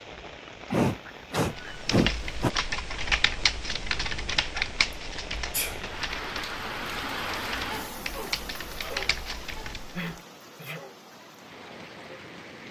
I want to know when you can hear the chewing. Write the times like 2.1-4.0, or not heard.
not heard.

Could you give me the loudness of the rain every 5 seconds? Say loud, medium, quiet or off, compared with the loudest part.
medium, loud, medium.